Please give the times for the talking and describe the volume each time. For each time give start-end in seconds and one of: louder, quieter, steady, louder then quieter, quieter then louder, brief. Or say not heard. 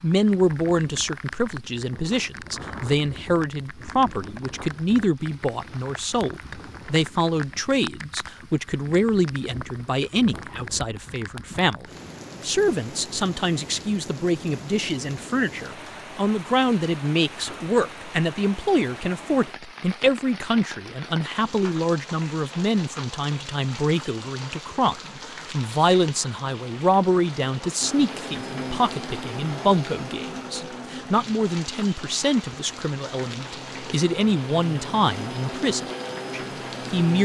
0.0-37.2 steady.